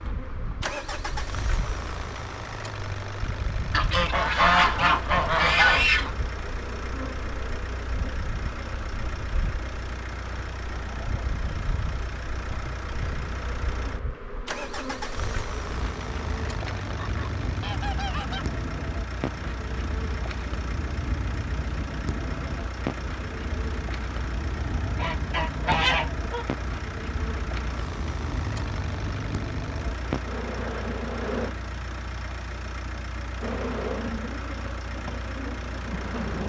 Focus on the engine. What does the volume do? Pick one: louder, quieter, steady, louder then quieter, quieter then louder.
steady.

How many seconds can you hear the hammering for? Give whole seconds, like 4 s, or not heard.
not heard.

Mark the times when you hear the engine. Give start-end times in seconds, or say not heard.
0.0-36.4.